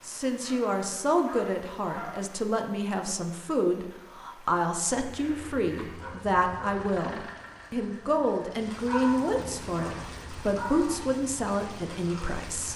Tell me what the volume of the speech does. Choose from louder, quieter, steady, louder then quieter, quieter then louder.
steady.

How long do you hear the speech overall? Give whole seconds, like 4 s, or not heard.
13 s.